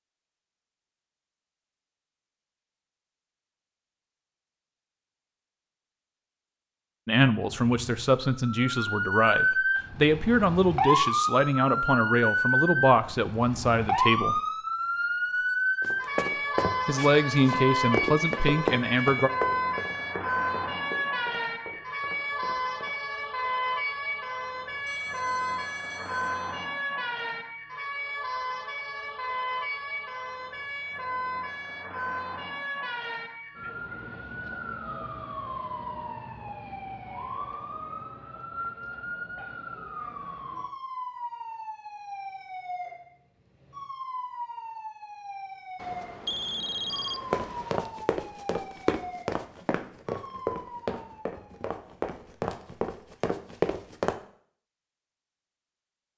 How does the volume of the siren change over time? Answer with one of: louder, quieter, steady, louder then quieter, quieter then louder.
quieter.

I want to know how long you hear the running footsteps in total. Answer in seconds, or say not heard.
14 s.